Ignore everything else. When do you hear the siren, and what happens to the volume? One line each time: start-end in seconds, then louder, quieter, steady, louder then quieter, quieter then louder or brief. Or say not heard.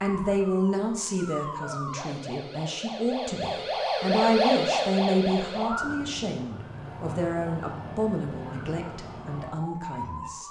0.0-10.4 louder then quieter.